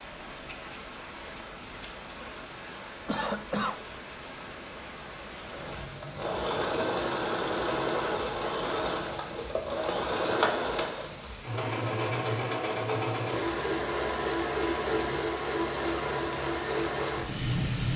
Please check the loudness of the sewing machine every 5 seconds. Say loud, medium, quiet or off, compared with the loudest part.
off, loud, loud, loud.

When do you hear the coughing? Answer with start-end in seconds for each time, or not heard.
3.0-3.8.